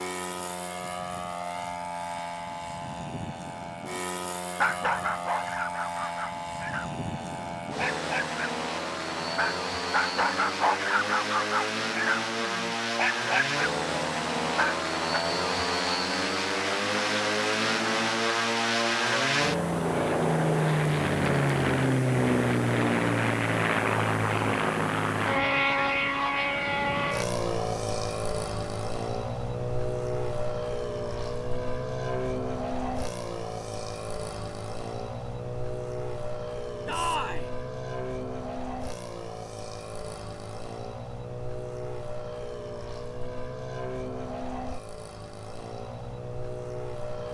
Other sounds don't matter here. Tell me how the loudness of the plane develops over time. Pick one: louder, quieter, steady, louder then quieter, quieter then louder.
louder then quieter.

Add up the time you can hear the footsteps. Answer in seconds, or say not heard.
not heard.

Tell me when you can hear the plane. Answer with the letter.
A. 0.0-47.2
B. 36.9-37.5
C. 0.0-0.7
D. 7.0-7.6
A.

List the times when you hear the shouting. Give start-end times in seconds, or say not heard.
36.9-37.5.